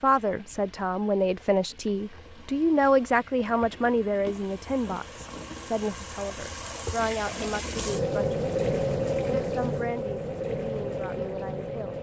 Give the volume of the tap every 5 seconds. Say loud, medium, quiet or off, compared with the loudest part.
quiet, loud, loud.